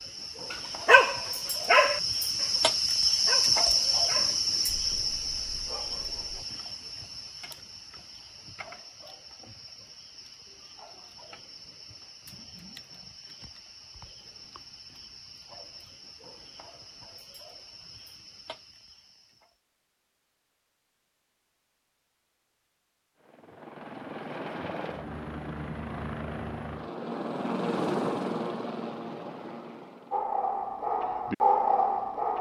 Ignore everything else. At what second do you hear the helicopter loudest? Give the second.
28 s.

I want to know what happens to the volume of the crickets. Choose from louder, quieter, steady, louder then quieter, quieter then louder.
quieter.